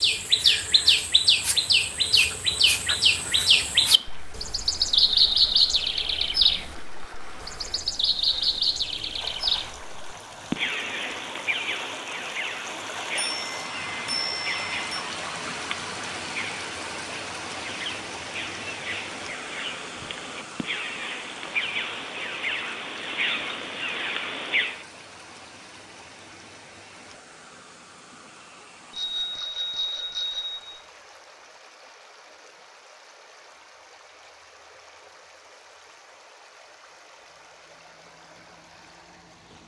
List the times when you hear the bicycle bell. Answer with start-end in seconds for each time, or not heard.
13.3-15.0, 28.9-30.8.